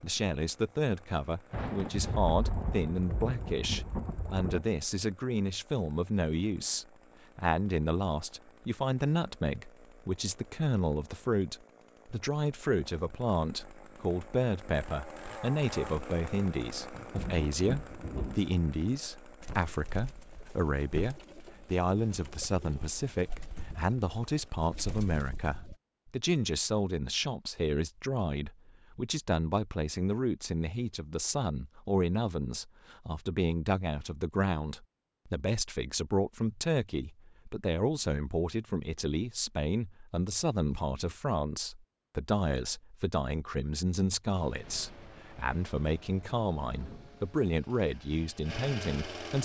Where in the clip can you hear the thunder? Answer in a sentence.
The thunder can be heard from 1.5 to 4.7 s, from 16.9 to 18.4 s and from 44.6 to 47.4 s.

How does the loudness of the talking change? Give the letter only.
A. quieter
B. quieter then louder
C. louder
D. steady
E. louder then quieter
D.